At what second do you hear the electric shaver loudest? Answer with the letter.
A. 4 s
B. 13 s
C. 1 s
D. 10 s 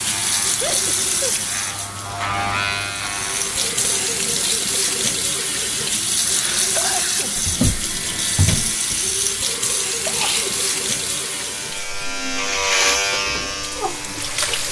B.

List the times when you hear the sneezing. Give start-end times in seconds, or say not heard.
0.6-1.4, 6.2-7.4, 10.1-10.6.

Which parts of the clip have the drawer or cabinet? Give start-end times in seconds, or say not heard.
3.0-5.1, 7.3-8.8.